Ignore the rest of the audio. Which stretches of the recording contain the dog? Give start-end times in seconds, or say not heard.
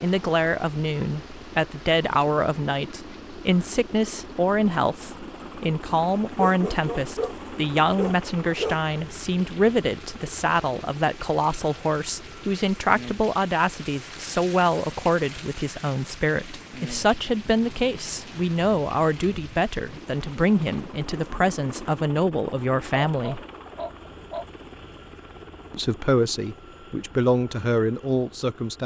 6.3-7.3, 8.0-8.8, 22.4-24.4.